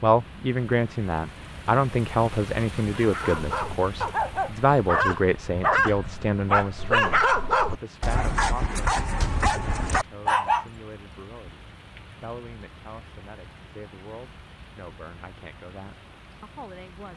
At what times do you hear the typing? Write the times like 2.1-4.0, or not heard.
not heard.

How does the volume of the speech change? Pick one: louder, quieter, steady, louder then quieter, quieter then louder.
quieter.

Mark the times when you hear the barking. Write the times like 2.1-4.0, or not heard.
3.0-10.7.